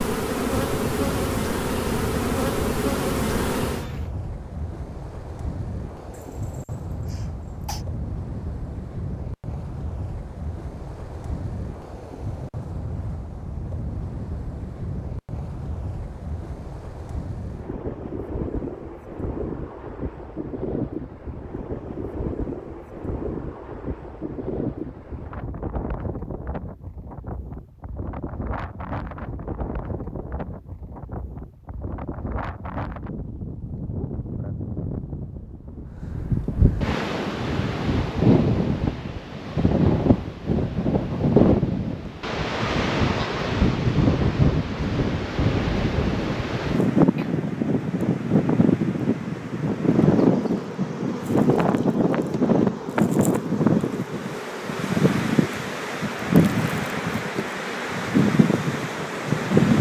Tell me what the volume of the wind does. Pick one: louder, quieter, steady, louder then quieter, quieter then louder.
louder.